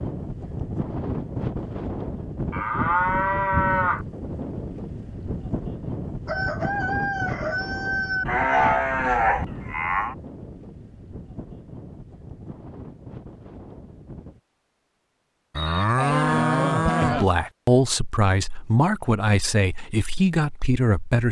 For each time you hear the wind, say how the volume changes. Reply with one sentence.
You can hear the wind from 0.0 to 14.4 s, getting quieter.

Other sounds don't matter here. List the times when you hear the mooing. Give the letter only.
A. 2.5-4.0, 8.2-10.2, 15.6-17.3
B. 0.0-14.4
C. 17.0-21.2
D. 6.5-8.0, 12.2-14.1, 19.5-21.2
A.